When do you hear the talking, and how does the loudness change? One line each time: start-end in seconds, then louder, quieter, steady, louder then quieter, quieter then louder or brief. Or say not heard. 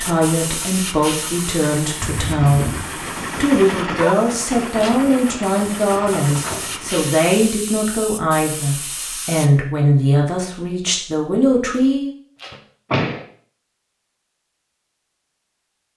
0.0-12.1 steady.